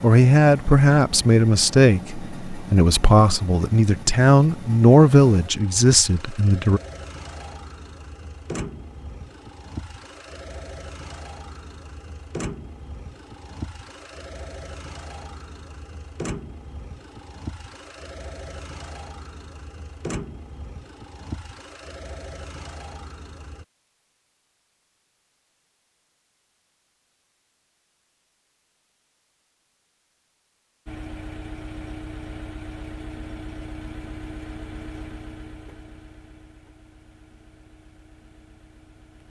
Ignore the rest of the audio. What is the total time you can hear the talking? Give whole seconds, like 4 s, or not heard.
7 s.